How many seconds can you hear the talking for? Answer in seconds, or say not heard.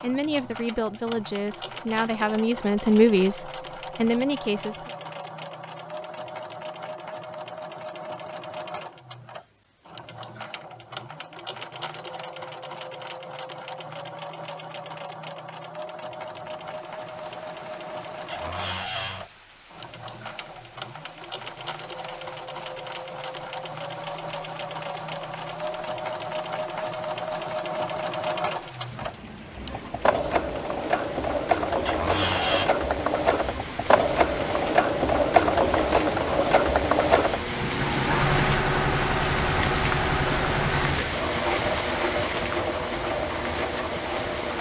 5 s.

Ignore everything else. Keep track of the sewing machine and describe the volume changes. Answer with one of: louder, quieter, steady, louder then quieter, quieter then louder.
louder.